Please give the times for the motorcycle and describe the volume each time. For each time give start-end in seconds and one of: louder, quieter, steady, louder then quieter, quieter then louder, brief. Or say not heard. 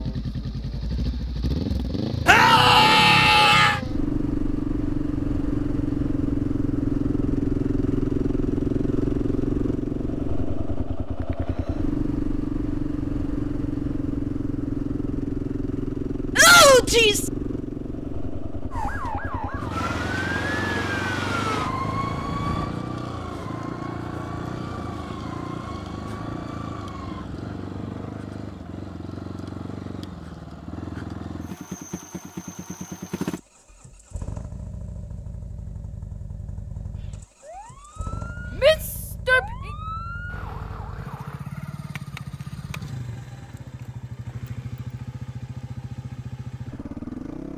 0.0-47.5 quieter.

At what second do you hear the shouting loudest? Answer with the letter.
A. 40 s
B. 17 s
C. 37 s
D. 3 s
B.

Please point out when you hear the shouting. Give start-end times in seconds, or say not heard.
2.2-3.8, 16.4-17.3, 38.6-39.5.